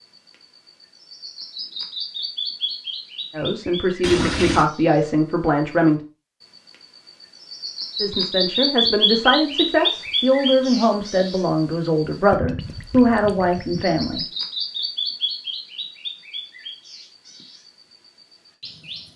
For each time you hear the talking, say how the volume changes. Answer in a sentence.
The talking can be heard briefly from 3.3 to 6.0 s; and from 8.0 to 14.2 s, at a steady volume.